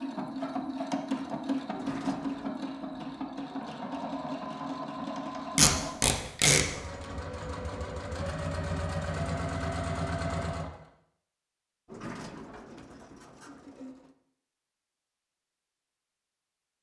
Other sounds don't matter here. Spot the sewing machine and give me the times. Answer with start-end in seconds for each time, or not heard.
0.0-10.8.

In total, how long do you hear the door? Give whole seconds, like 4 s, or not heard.
3 s.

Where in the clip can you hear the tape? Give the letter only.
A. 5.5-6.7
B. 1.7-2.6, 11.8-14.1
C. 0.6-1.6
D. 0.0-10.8
A.